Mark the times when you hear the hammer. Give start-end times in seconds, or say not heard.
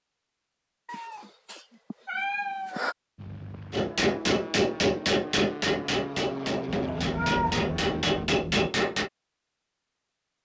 3.7-9.1.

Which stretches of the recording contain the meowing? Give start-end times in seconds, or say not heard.
0.8-3.0, 6.7-8.7.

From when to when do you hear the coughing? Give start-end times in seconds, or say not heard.
not heard.